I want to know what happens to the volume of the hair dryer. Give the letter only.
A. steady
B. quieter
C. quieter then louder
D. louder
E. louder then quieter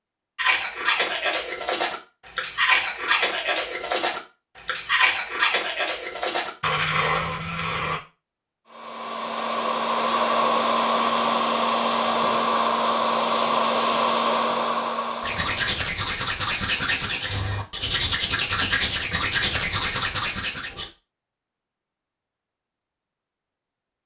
A.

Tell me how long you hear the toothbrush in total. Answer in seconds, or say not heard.
13 s.